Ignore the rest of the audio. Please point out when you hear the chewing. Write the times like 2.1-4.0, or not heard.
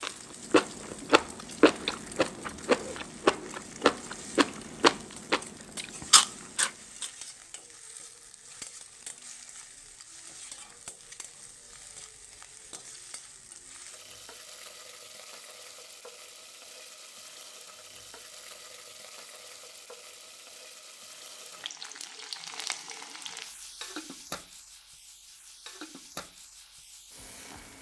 0.0-7.1.